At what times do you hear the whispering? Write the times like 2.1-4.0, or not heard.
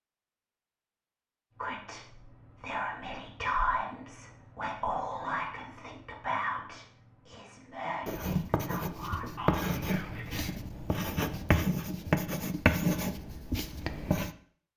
1.6-10.5.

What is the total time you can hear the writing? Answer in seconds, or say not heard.
6 s.